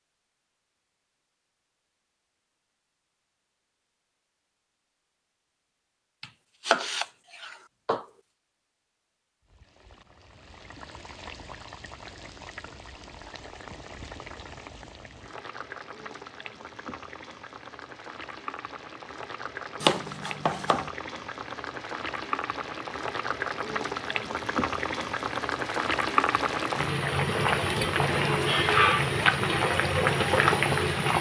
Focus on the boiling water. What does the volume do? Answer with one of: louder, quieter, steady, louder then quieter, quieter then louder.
louder.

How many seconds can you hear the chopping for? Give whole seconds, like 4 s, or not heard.
3 s.